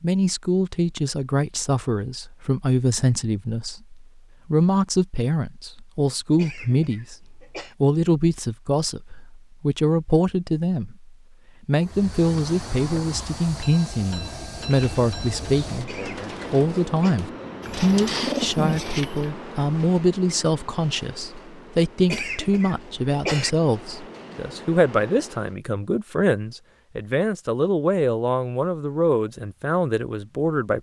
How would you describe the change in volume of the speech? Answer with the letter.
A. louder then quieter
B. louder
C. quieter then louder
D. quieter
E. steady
E.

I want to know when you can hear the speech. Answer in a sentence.
You can hear the speech from 0.0 to 30.7 s.